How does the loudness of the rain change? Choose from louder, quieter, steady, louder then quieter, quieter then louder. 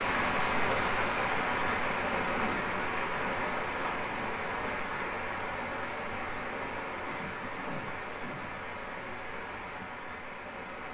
quieter.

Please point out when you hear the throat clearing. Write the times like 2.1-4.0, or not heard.
2.2-2.8, 7.1-8.6.